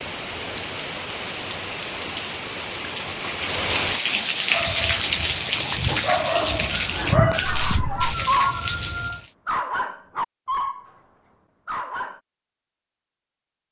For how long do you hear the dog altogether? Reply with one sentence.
The dog can be heard for 7 seconds in total.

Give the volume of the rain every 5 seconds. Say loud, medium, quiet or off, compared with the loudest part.
loud, loud, off.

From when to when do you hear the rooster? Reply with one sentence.
You can hear the rooster from 6.6 to 9.2 s.